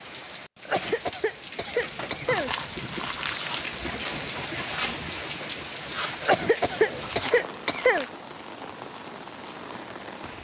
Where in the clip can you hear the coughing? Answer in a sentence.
The coughing can be heard from 0.7 to 2.5 s and from 6.2 to 8.1 s.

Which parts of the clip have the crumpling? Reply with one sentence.
You can hear the crumpling from 2.2 to 3.7 s and from 7.0 to 8.2 s.